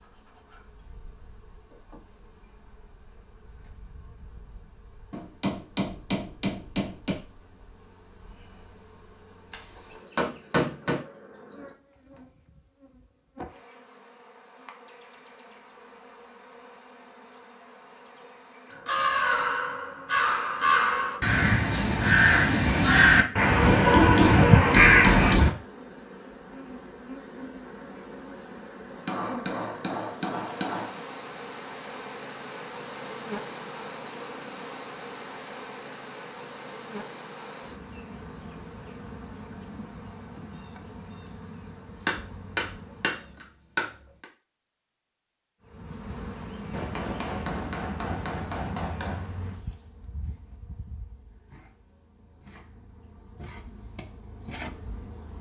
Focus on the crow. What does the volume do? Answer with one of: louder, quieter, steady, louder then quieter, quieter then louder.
louder.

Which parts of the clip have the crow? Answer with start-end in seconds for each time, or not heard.
18.7-25.6.